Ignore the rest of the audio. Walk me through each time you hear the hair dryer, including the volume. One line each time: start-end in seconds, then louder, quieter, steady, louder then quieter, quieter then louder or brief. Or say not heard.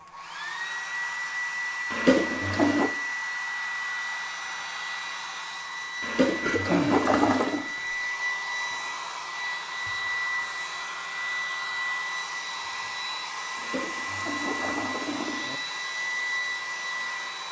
0.0-17.4 steady.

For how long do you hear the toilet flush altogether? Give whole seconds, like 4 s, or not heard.
5 s.